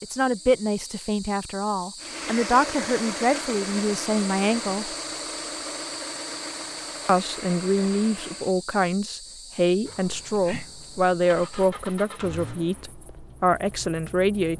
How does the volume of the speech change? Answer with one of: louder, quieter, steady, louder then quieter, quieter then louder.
steady.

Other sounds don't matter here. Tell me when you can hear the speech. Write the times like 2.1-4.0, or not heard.
0.0-4.9, 7.0-14.5.